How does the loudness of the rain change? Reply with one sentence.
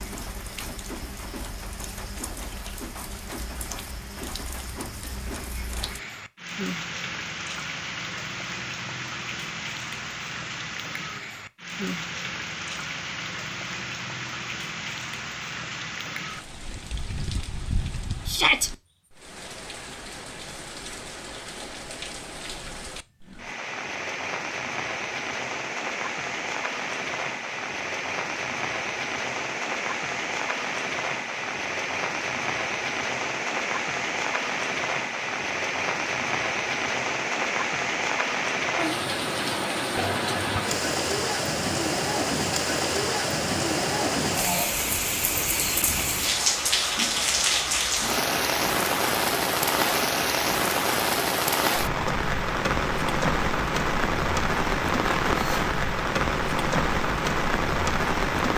The volume of the rain goes up.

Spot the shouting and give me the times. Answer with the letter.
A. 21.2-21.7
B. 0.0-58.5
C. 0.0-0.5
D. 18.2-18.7
D.